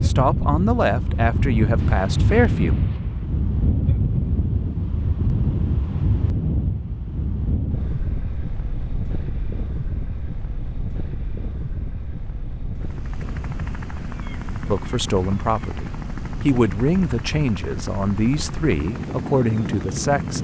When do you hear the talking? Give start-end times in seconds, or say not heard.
0.0-2.8, 14.7-20.3.